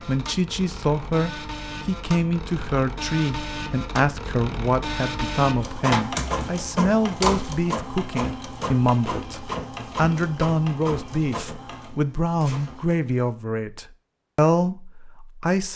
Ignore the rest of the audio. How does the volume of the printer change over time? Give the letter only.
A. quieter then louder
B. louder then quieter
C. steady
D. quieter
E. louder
B.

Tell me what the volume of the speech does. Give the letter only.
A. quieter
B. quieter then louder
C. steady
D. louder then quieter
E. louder
C.